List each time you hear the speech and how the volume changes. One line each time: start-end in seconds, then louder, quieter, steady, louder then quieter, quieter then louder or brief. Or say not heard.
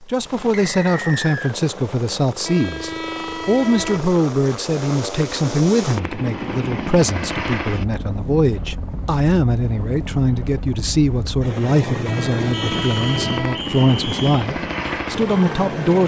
0.0-16.0 steady.